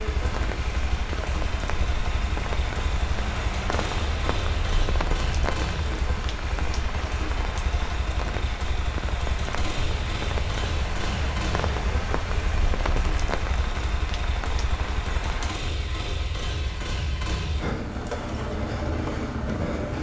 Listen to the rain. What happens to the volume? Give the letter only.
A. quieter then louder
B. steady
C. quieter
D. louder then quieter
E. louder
B.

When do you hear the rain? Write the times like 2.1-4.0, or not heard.
0.0-15.6.